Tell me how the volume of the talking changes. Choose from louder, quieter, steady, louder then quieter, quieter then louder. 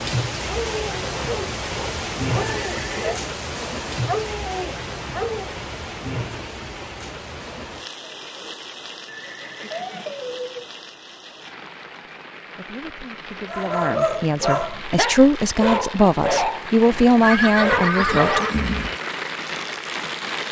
louder.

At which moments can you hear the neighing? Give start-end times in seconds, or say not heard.
2.4-3.2, 9.1-10.7, 17.2-19.0.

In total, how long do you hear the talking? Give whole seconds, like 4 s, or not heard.
6 s.